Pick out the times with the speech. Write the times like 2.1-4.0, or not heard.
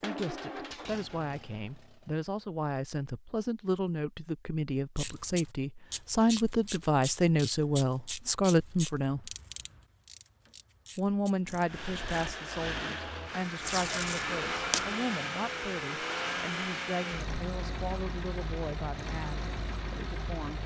0.0-9.3, 10.9-20.6.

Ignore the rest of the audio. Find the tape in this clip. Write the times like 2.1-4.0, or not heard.
13.6-14.9.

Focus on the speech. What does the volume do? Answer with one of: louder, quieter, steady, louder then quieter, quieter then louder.
louder then quieter.